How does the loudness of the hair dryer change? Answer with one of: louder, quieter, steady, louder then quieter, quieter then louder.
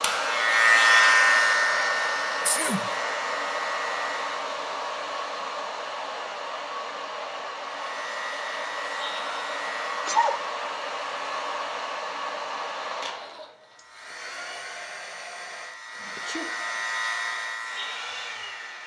quieter.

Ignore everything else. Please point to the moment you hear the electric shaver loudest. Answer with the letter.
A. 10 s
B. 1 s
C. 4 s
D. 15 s
B.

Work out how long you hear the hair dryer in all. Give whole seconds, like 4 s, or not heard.
19 s.